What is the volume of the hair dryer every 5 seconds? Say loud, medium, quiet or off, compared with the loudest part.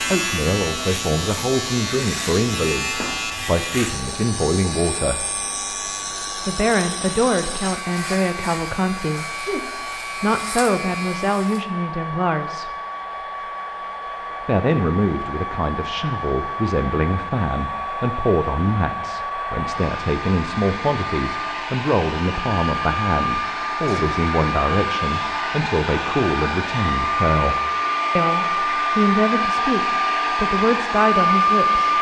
quiet, quiet, quiet, medium, medium, loud, loud.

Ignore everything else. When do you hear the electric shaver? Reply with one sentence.
You can hear the electric shaver from 0.0 to 11.7 s.